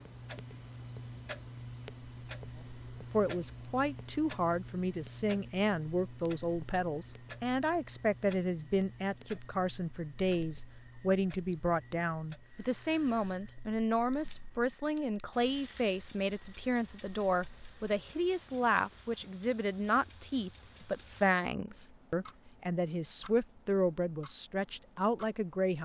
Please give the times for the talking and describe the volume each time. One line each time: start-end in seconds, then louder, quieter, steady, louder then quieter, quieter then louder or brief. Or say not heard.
3.1-25.8 steady.